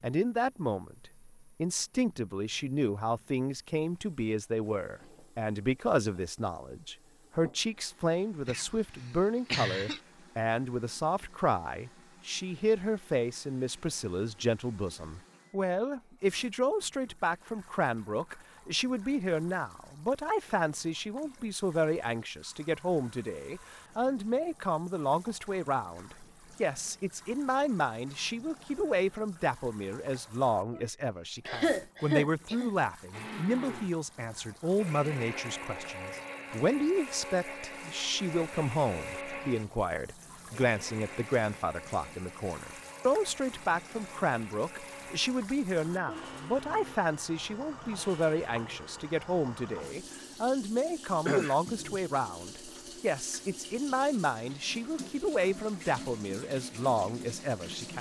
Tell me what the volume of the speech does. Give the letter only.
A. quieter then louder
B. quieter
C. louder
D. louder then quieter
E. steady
E.